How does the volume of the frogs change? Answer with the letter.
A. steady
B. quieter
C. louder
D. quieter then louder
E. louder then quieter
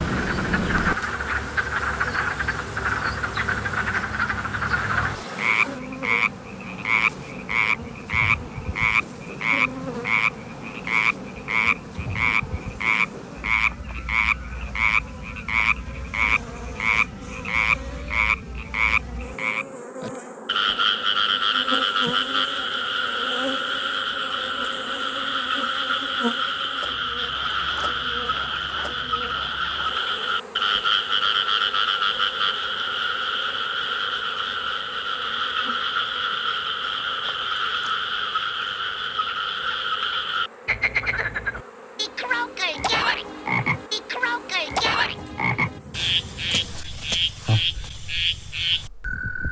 A.